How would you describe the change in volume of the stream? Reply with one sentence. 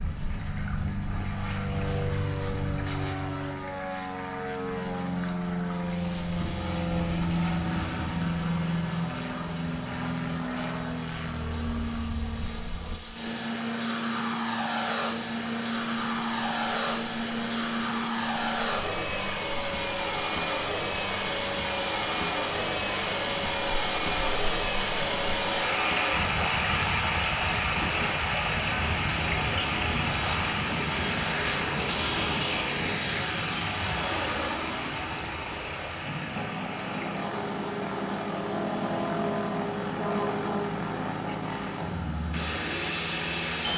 The loudness of the stream goes up, then down.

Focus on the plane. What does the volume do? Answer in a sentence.
The loudness of the plane stays about the same.